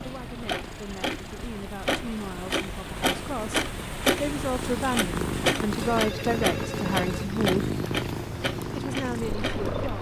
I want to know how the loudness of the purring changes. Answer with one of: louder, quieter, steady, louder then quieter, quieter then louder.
louder.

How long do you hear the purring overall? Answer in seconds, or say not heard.
10 s.